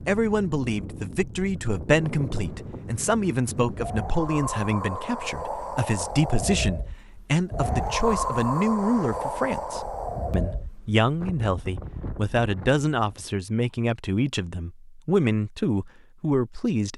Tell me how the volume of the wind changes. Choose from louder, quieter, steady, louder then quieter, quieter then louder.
louder then quieter.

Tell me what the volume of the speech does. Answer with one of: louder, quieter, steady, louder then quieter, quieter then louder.
steady.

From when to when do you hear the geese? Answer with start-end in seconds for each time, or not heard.
not heard.